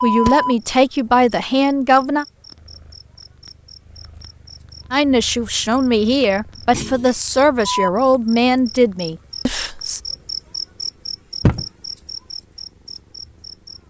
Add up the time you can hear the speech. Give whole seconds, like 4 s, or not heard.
7 s.